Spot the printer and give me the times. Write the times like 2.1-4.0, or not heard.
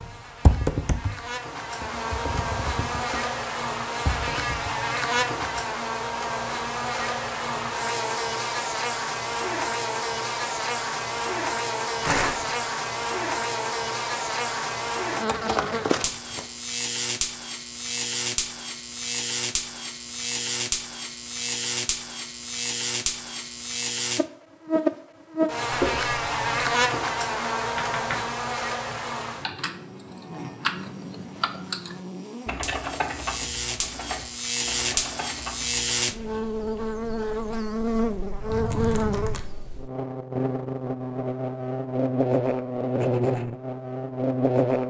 not heard.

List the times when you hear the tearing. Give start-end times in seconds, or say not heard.
12.0-12.6, 15.2-16.4, 38.5-39.4.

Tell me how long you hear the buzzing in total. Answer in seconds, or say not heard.
45 s.